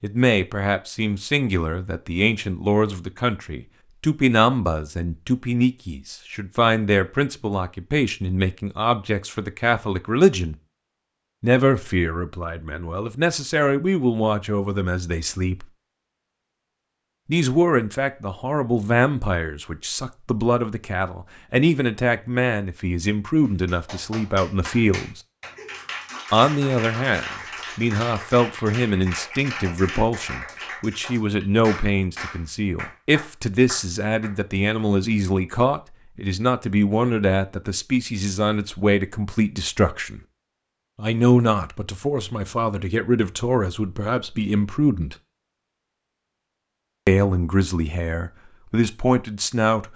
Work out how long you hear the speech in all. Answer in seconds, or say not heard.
44 s.